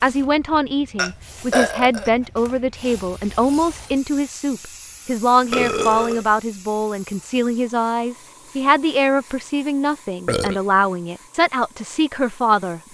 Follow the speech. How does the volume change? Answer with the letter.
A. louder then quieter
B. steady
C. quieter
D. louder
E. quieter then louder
B.